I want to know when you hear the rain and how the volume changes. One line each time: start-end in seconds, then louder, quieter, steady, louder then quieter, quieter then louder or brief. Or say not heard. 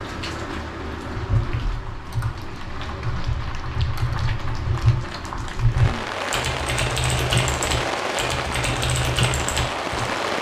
0.0-10.3 louder.